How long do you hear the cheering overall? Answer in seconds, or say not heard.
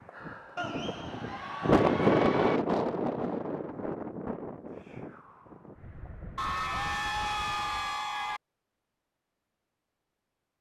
4 s.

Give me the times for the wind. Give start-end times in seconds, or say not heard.
0.0-8.0.